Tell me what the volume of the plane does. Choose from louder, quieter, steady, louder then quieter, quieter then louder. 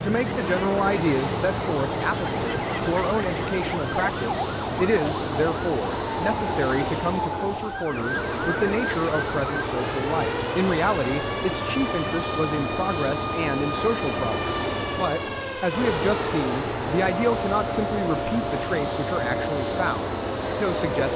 steady.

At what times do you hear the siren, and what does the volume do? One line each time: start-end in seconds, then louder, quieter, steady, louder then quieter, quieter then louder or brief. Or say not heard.
0.0-21.1 steady.